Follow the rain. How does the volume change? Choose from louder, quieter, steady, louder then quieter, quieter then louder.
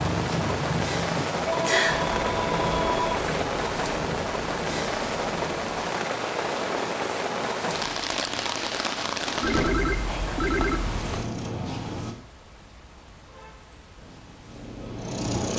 quieter.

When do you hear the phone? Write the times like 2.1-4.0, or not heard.
1.4-3.2, 9.4-10.8.